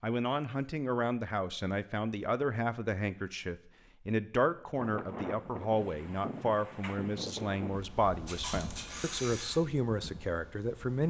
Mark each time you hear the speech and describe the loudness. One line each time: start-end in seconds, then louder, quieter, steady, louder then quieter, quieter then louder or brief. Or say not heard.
0.0-11.0 steady.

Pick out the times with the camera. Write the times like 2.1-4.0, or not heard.
8.2-9.6.